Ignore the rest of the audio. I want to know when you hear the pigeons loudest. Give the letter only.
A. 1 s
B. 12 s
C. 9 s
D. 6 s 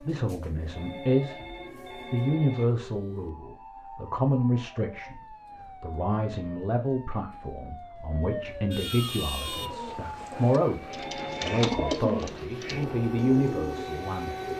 B.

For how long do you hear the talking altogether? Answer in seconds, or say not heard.
14 s.